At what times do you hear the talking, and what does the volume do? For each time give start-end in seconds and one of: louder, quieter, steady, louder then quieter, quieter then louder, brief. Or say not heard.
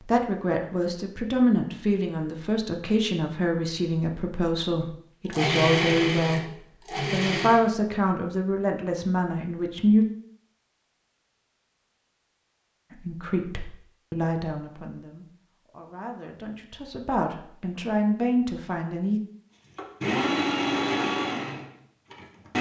0.0-6.5 steady
7.1-10.1 brief
12.9-19.2 quieter then louder.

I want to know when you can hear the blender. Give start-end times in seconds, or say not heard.
5.2-7.7, 19.8-22.5.